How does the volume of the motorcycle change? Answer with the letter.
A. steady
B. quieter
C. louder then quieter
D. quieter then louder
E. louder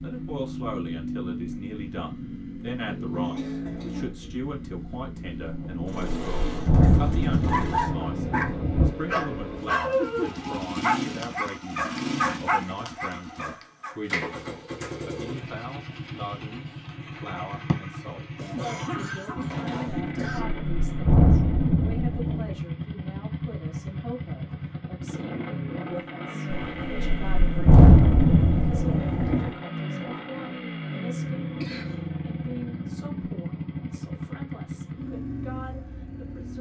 A.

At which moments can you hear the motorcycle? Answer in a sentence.
You can hear the motorcycle from 0.0 to 36.5 s.